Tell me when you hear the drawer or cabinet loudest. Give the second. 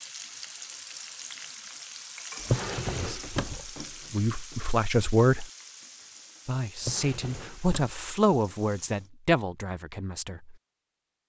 3 s.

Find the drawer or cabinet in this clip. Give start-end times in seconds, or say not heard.
2.4-3.6, 6.8-8.0.